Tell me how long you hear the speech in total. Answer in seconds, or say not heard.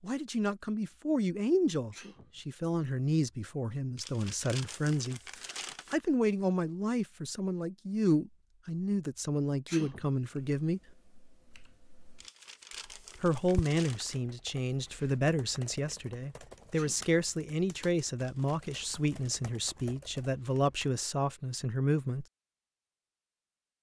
20 s.